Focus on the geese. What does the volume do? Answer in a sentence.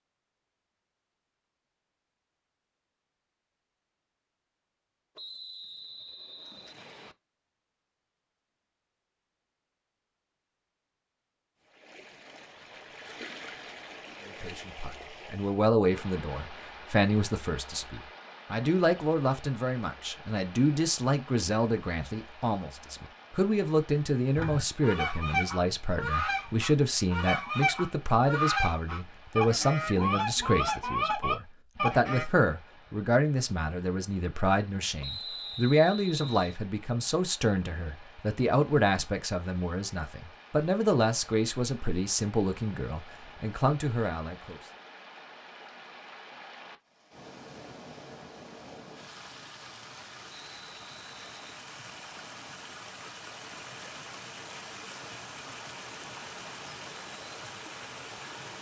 The volume of the geese stays about the same.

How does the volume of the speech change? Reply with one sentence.
The loudness of the speech stays about the same.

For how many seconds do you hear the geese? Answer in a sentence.
You can hear the geese for 8 seconds altogether.